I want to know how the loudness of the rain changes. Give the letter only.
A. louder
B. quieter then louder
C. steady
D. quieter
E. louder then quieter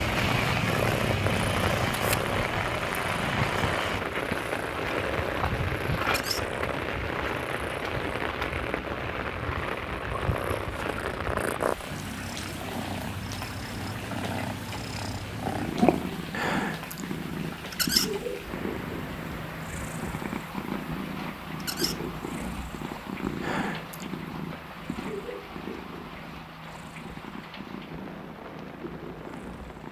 D.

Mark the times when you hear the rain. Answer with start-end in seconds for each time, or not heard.
0.0-29.8.